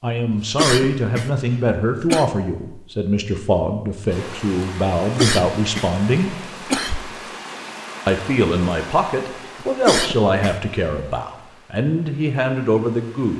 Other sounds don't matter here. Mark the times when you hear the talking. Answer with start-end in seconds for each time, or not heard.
0.0-6.3, 8.1-13.3.